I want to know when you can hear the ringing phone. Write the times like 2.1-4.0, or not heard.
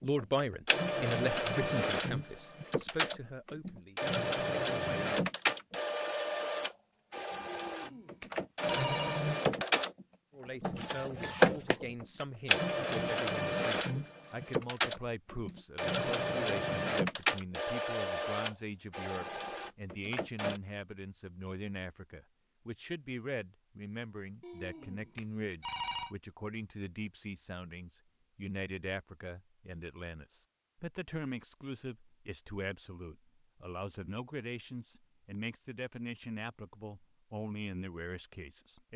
7.5-9.2, 24.4-26.1.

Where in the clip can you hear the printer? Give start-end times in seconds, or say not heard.
0.0-20.6.